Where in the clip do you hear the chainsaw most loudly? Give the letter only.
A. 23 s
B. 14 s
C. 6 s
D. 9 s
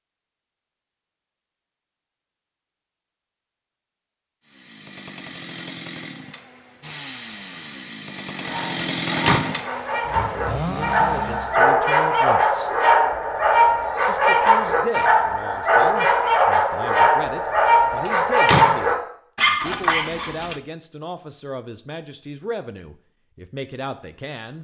D.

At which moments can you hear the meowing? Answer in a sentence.
The meowing can be heard from 19.6 to 20.6 s.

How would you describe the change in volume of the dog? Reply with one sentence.
The loudness of the dog goes up.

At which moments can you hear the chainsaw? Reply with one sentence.
You can hear the chainsaw from 4.5 to 11.8 s.